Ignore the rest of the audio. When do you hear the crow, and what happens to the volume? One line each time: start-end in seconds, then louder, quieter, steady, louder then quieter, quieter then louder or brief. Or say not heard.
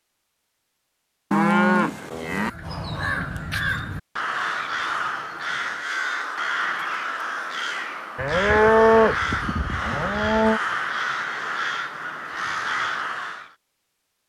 2.3-13.6 steady.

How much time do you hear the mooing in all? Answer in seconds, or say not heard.
4 s.